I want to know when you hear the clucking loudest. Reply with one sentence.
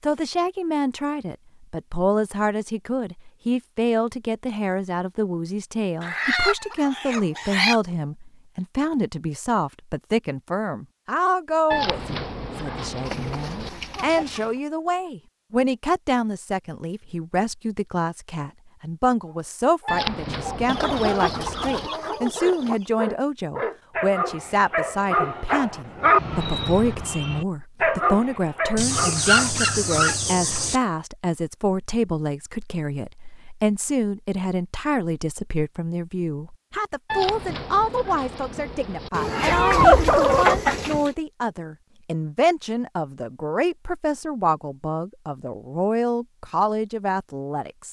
The volume of the clucking peaks at 40 seconds.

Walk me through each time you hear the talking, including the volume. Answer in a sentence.
The talking can be heard from 0.0 to 47.8 s, at a steady volume.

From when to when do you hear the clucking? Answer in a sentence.
The clucking can be heard from 6.0 to 7.8 s, from 13.1 to 14.6 s, from 20.6 to 22.9 s, from 28.8 to 30.8 s and from 39.1 to 41.1 s.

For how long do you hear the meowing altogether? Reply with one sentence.
The meowing can be heard for 6 seconds in total.